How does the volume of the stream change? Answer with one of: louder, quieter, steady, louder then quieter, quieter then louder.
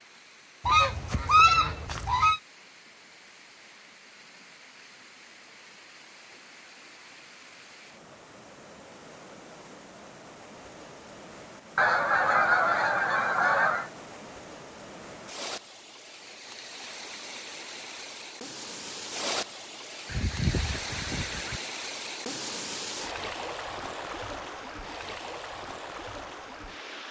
louder.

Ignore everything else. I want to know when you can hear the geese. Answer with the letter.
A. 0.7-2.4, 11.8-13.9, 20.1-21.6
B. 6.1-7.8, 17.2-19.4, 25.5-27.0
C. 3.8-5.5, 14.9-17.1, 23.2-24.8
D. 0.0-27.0
A.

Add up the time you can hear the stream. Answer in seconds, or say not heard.
27 s.